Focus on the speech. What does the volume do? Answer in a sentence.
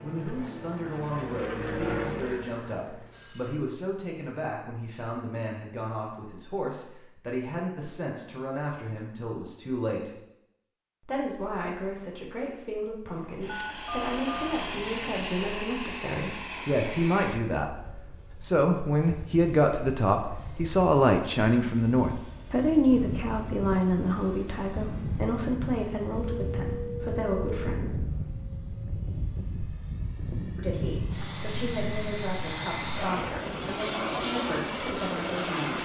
The volume of the speech goes up, then down.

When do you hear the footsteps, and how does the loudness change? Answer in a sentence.
You can't hear the footsteps here.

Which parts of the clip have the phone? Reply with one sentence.
You can hear the phone from 1.4 to 3.5 s, from 13.4 to 14.5 s and from 26.1 to 27.8 s.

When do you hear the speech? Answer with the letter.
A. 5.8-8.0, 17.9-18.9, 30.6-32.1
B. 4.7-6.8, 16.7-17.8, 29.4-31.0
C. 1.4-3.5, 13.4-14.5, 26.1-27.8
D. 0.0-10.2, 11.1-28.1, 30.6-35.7
D.